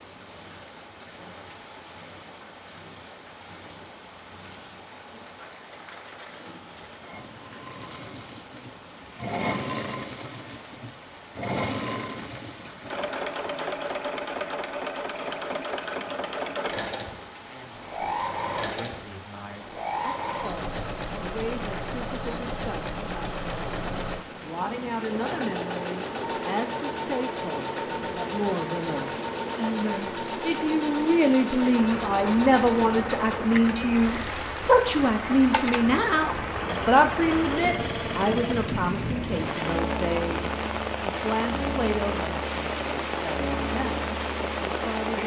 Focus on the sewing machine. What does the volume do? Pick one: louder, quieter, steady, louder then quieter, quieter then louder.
louder.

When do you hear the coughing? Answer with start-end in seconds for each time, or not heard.
not heard.